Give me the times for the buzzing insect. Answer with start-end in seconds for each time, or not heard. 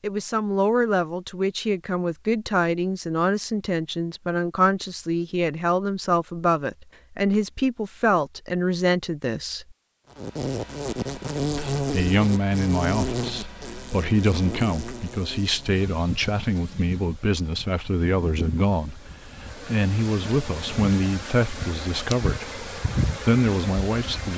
10.2-24.3.